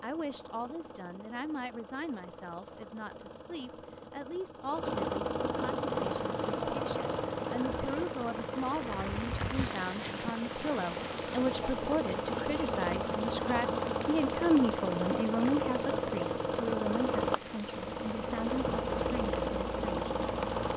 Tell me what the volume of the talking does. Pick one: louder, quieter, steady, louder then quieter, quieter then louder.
louder then quieter.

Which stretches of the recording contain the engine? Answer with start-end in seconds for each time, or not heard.
0.0-20.7.